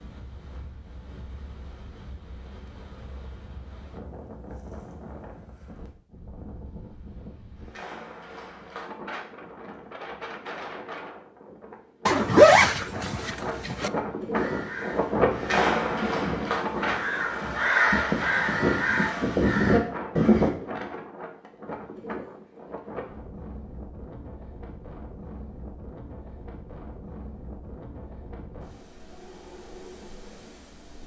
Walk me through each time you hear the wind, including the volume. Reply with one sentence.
The wind can be heard from 0.0 to 31.0 s, getting louder then quieter.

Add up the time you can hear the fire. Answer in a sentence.
The fire can't be heard in this clip.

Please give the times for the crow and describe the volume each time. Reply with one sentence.
You can hear the crow from 14.3 to 20.5 s, getting louder.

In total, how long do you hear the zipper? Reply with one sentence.
The zipper can be heard for 2 seconds in total.